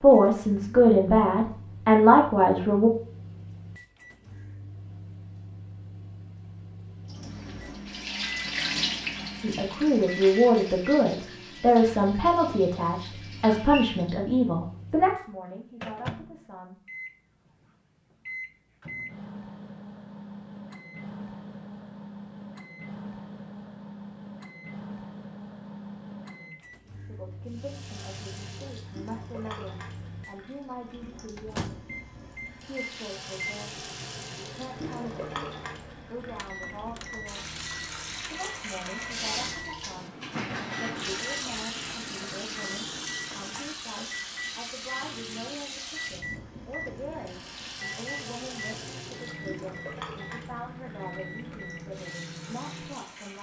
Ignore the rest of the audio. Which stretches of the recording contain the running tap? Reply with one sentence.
You can hear the running tap from 7.0 to 14.3 s and from 27.4 to 53.3 s.